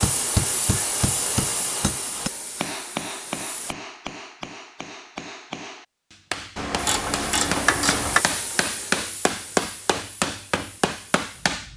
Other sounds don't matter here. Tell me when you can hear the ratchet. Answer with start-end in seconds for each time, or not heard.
6.5-8.2.